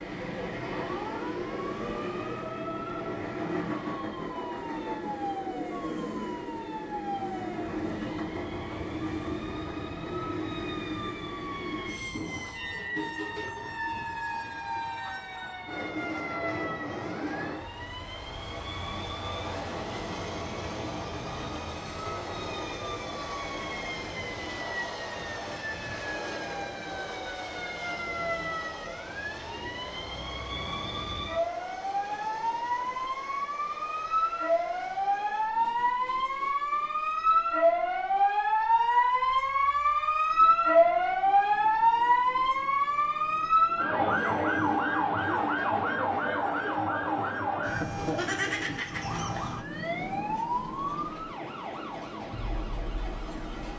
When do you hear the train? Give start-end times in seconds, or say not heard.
0.0-53.7.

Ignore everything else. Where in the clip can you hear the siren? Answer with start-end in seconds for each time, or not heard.
0.0-53.7.